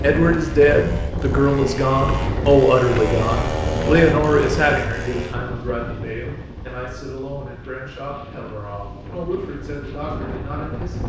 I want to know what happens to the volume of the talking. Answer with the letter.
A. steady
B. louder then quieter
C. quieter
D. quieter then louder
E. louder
C.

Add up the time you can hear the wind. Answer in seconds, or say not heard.
11 s.